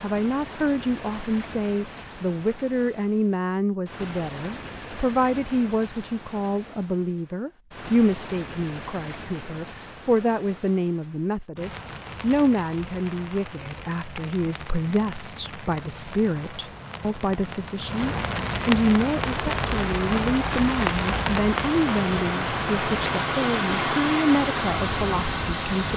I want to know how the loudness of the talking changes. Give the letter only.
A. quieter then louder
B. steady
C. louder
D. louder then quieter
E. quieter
B.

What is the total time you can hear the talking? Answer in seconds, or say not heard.
26 s.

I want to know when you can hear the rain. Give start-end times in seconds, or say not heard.
0.0-25.9.